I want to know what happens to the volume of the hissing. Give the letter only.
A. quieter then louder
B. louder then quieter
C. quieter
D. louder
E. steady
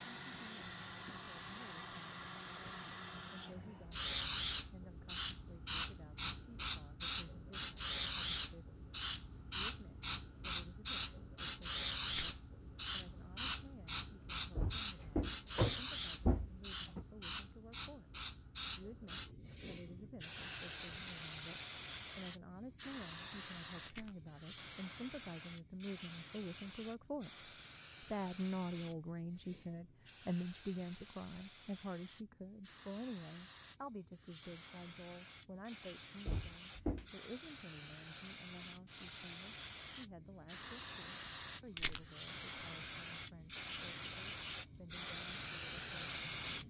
A.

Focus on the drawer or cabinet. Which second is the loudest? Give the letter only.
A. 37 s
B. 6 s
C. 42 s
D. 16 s
D.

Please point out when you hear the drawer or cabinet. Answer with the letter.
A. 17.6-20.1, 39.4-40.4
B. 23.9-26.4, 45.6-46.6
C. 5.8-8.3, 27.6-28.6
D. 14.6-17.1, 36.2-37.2
D.